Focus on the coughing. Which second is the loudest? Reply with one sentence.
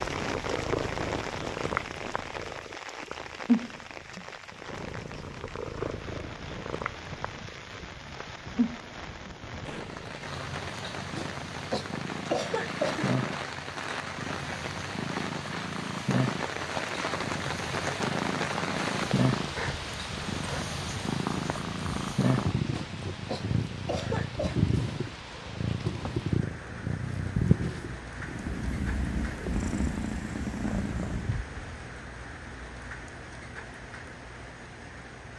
The loudest moment of the coughing is at 12 seconds.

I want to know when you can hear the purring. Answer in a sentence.
You can hear the purring from 0.0 to 31.4 s.